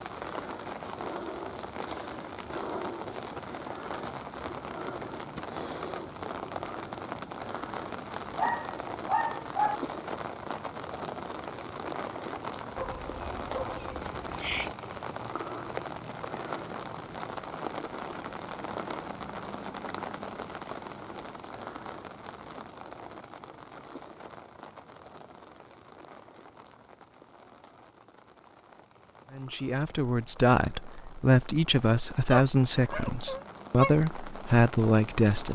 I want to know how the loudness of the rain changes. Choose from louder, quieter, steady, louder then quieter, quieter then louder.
quieter.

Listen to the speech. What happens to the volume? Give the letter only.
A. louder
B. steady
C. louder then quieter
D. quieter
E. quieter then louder
B.